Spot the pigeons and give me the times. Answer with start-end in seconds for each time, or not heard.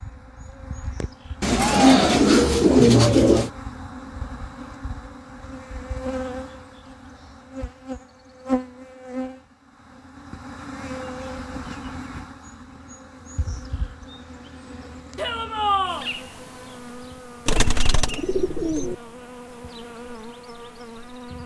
1.4-3.5, 17.4-18.9.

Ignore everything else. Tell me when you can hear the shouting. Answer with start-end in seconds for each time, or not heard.
1.5-2.2, 15.2-16.1.